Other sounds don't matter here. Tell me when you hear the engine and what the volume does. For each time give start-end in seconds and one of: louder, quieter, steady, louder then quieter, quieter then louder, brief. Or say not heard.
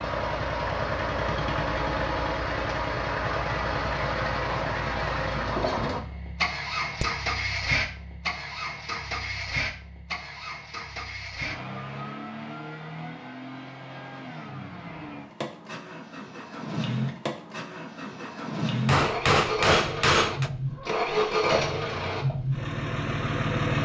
0.0-23.7 quieter then louder.